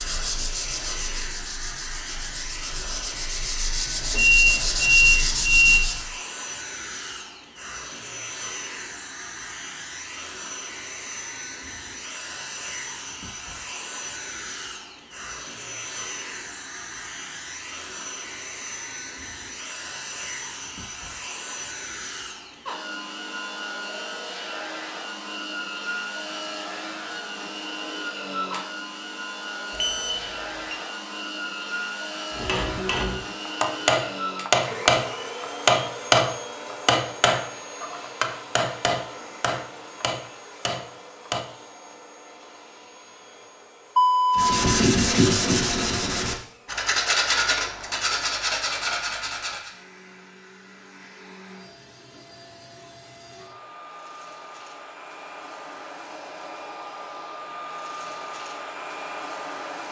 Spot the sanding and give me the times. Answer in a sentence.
The sanding can be heard from 0.0 to 6.0 s and from 44.4 to 49.8 s.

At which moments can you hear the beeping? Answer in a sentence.
You can hear the beeping from 4.1 to 5.9 s, from 29.8 to 30.8 s and from 44.0 to 44.6 s.